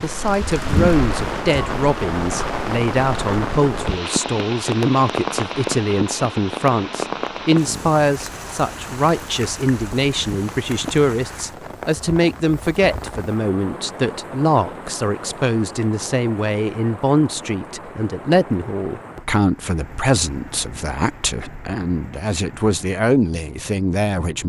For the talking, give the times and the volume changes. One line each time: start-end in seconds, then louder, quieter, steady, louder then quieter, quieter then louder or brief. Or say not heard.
0.0-24.4 steady.